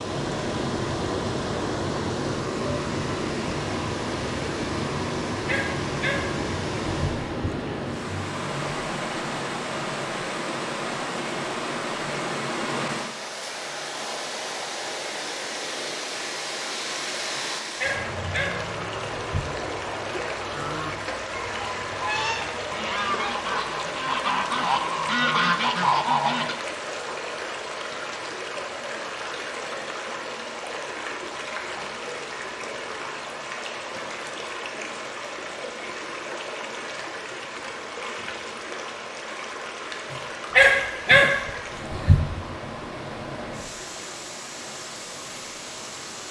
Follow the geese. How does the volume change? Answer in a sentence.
The loudness of the geese goes up.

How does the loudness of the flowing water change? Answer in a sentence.
The loudness of the flowing water goes down.